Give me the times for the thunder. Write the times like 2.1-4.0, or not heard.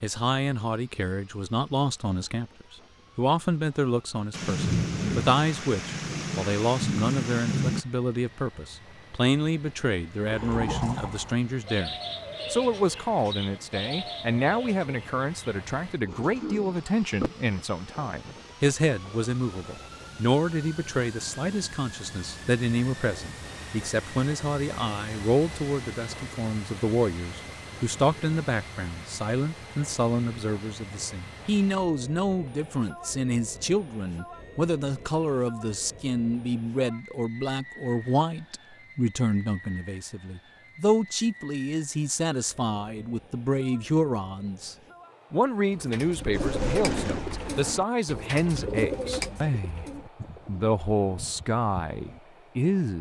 4.3-7.8, 46.3-47.9.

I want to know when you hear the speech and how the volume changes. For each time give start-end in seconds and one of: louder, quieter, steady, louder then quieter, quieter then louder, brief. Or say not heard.
0.0-49.9 steady
50.5-52.9 brief.